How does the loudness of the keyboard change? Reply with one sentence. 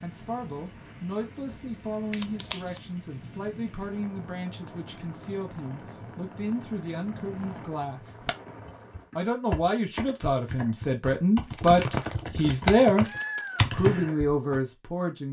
The volume of the keyboard goes up.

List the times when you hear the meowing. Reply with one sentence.
The meowing can be heard from 12.9 to 13.8 s.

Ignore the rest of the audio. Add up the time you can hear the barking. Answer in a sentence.
The barking can't be heard in this clip.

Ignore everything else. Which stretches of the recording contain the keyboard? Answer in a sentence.
You can hear the keyboard from 8.2 to 14.6 s.